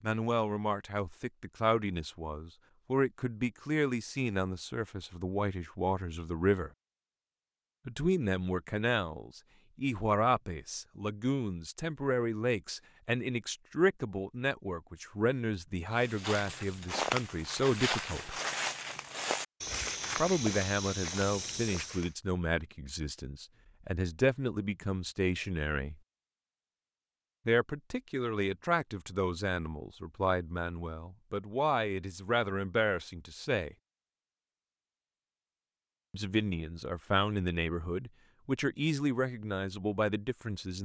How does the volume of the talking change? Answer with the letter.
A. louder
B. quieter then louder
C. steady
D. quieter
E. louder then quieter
C.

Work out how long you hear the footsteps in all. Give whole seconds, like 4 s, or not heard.
6 s.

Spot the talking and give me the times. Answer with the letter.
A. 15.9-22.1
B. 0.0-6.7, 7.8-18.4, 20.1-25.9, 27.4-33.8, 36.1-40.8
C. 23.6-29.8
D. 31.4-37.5
B.